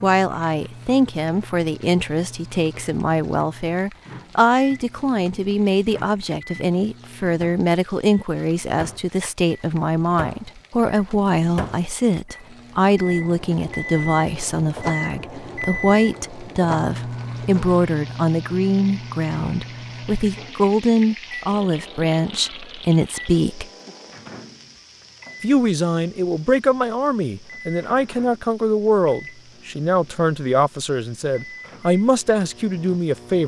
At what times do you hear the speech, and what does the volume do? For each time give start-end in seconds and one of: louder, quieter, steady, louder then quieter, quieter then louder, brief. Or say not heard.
0.0-23.6 steady
25.4-33.4 steady.